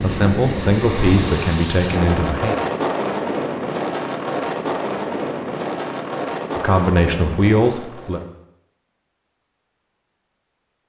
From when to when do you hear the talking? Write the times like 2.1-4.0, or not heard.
0.0-2.5, 6.5-8.2.